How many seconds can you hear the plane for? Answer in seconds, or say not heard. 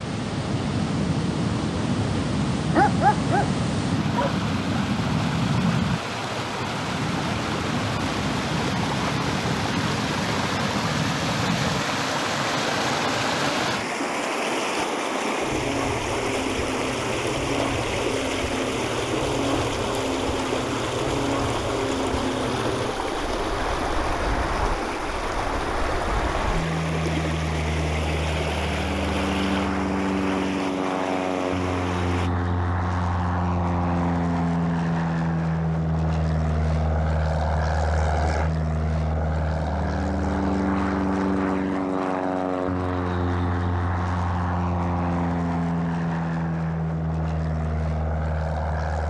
49 s.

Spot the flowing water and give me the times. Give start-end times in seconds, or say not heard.
0.0-32.3.